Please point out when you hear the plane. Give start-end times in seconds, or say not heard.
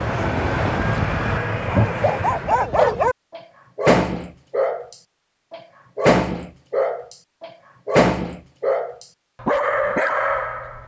0.0-2.6.